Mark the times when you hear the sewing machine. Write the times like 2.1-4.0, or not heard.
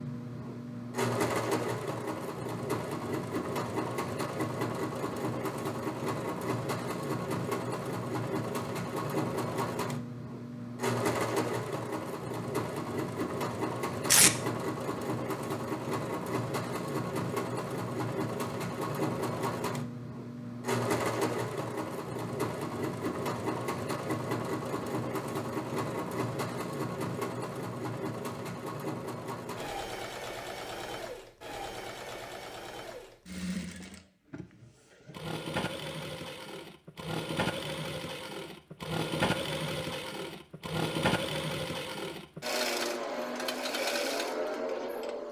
0.0-45.2.